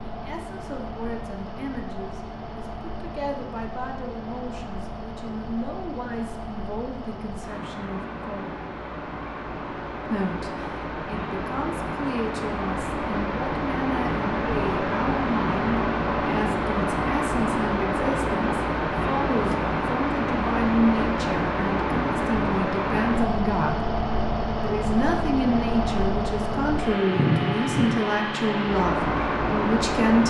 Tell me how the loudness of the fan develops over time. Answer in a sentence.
The volume of the fan goes up.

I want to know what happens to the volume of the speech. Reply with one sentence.
The volume of the speech goes up.